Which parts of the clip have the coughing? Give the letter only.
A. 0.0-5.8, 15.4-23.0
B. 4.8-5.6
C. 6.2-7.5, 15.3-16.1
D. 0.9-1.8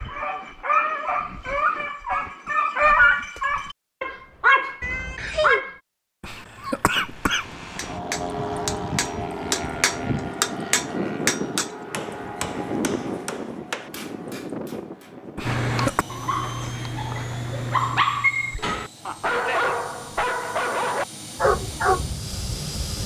C.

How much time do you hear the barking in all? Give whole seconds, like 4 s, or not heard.
13 s.